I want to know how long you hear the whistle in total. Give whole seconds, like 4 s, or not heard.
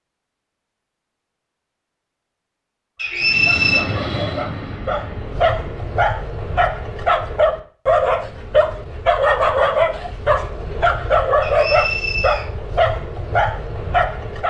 2 s.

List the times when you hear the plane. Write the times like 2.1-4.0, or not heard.
3.2-6.0.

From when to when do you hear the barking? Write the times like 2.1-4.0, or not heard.
3.0-14.4.